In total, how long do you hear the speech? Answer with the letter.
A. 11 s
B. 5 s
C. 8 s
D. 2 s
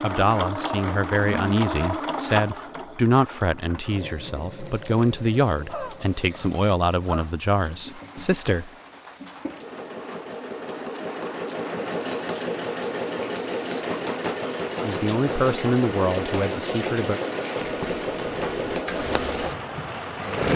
A.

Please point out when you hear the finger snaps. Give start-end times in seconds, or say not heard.
not heard.